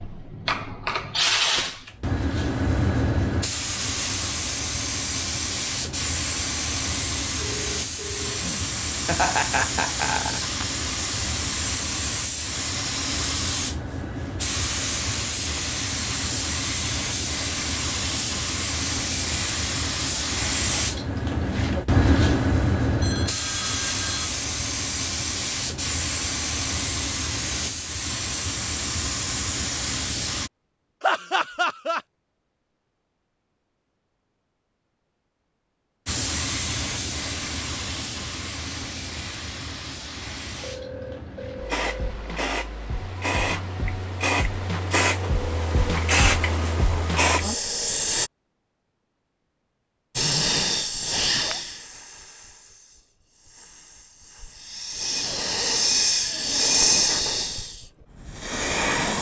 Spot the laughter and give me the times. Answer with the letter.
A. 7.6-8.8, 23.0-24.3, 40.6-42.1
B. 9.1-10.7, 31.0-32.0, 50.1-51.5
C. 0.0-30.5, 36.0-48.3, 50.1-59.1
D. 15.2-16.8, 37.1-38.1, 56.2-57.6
B.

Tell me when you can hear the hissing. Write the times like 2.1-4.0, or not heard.
0.0-30.5, 36.0-48.3, 50.1-59.1.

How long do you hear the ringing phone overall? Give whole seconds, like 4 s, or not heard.
4 s.